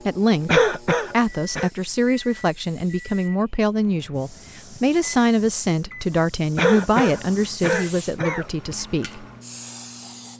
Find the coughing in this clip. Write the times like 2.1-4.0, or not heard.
0.5-1.7, 6.5-8.8.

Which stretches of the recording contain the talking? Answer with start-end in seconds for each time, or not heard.
0.1-9.2.